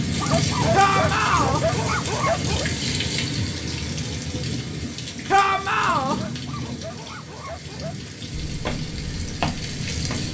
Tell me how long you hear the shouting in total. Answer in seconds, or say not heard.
2 s.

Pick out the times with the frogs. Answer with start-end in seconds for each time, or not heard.
not heard.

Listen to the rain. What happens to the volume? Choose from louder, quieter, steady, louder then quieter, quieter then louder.
quieter.